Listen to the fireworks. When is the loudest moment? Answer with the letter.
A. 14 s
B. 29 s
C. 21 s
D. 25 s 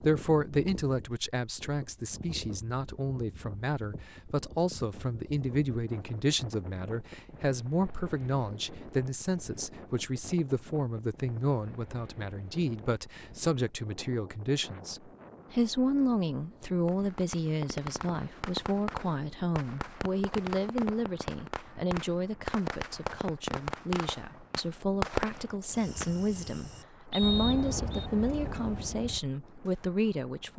D.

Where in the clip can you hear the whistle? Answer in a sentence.
You can hear the whistle from 27.1 to 28.1 s.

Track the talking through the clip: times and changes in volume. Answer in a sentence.
The talking can be heard from 0.0 to 30.5 s, at a steady volume.